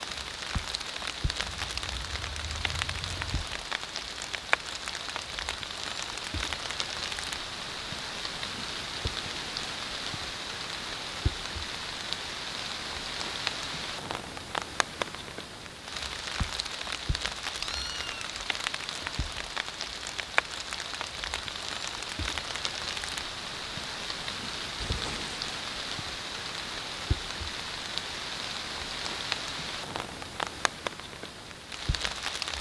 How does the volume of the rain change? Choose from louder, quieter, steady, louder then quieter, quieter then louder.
steady.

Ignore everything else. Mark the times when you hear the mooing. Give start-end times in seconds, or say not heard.
not heard.